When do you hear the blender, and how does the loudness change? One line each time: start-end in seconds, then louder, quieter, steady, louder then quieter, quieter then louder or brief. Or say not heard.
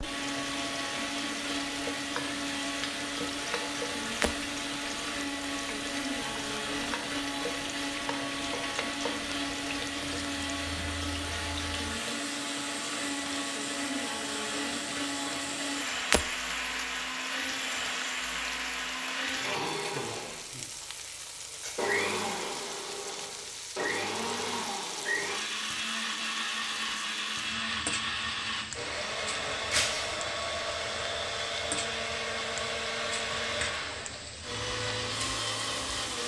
0.0-36.2 steady.